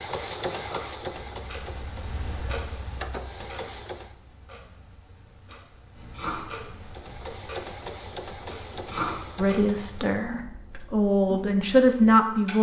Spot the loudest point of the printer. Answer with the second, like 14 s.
1 s.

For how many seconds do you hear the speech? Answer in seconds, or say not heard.
3 s.